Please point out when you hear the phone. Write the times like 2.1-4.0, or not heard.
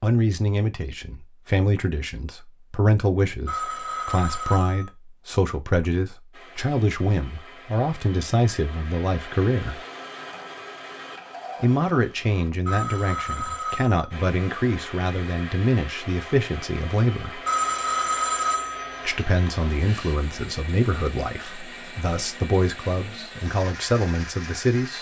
3.5-4.9, 12.7-14.1, 17.4-20.1.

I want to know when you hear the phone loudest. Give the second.
18 s.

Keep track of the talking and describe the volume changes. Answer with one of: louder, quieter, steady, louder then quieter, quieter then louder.
steady.